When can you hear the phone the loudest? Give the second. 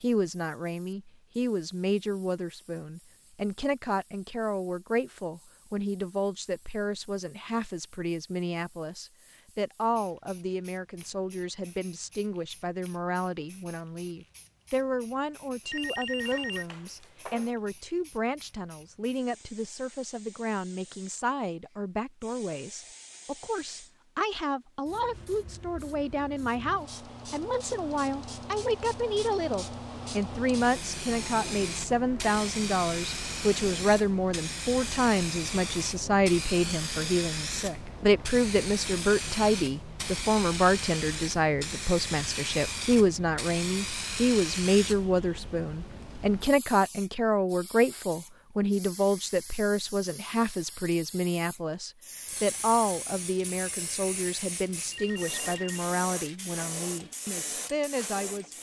16 s.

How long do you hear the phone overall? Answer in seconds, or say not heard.
3 s.